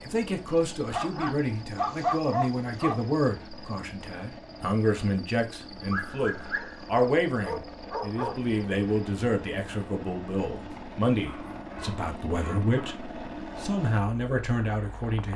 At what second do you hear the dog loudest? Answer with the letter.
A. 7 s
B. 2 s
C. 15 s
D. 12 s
B.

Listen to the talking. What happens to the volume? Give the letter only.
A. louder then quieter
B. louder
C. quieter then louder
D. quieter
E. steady
E.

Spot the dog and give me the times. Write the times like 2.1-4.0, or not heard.
0.9-3.0, 5.8-8.3, 10.7-13.6.